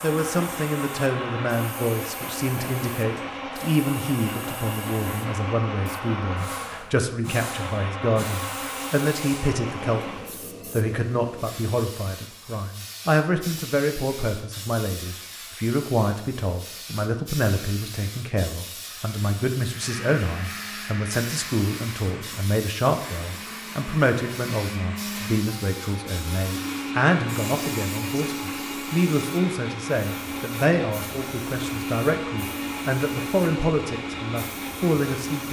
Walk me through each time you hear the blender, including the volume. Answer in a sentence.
The blender can be heard from 0.0 to 10.3 s, at a steady volume; and from 19.6 to 35.4 s, getting louder.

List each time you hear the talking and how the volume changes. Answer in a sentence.
The talking can be heard from 0.0 to 35.4 s, at a steady volume.